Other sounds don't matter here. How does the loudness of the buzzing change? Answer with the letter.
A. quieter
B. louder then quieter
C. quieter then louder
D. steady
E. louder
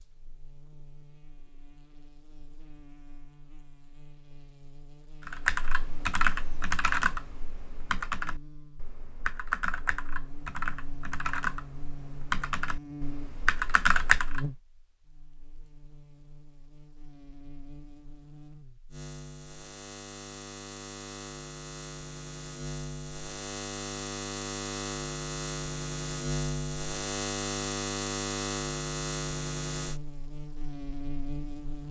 E.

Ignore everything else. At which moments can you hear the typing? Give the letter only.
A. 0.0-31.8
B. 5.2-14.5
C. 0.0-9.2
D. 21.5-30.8
B.